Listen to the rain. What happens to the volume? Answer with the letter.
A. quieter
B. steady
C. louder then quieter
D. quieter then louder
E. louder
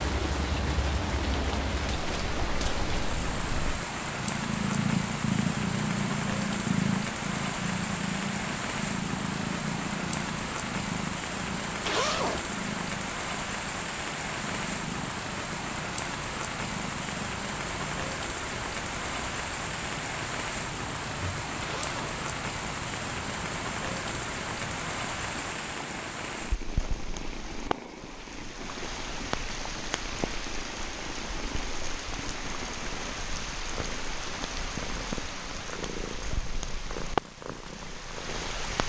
B.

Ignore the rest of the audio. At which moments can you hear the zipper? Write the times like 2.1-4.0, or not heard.
11.7-12.4, 21.6-22.2.